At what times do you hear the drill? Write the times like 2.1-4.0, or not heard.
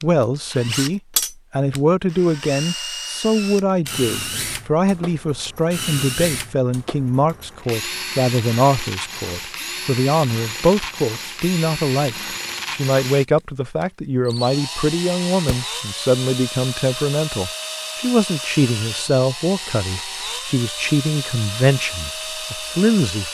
0.0-23.3.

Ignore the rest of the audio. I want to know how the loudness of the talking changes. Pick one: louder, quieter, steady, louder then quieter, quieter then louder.
steady.